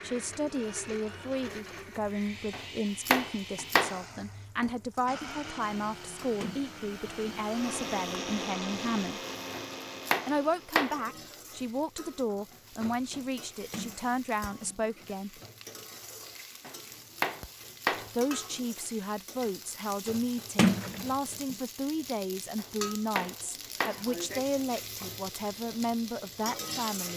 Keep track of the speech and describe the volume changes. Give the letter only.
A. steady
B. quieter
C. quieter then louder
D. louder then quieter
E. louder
A.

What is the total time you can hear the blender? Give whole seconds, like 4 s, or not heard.
11 s.